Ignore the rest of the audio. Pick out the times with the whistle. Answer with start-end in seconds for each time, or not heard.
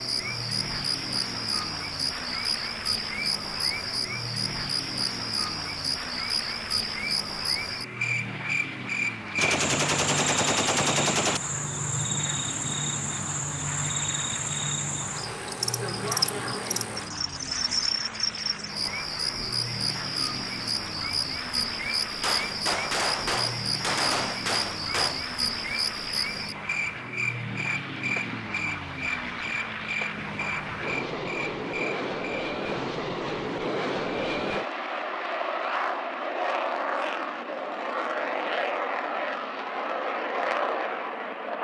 not heard.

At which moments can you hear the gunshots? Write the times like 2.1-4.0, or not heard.
9.3-11.4, 22.2-25.2.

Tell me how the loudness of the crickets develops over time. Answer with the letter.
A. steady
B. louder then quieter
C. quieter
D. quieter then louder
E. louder
A.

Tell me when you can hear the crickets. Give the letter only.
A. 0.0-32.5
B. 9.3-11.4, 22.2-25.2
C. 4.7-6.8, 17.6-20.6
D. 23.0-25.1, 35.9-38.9
A.